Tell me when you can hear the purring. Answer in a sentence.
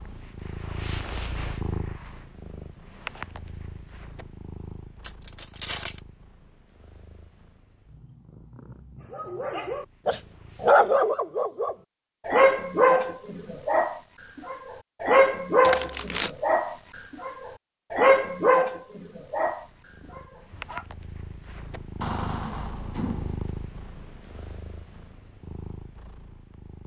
You can hear the purring from 0.0 to 10.8 s and from 19.4 to 26.8 s.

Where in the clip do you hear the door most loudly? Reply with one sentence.
The loudest moment of the door is at 22 seconds.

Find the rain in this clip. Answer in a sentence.
You can't hear the rain here.